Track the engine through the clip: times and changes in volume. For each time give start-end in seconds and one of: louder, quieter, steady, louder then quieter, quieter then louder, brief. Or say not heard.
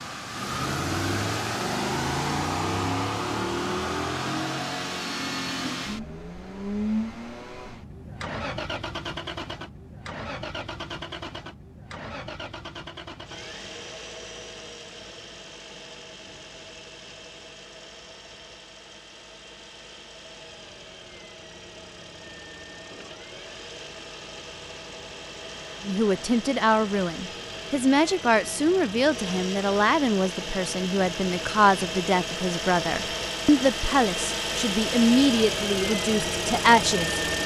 0.0-37.4 quieter then louder.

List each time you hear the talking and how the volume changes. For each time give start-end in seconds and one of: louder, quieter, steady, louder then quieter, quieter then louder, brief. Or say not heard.
25.9-37.2 steady.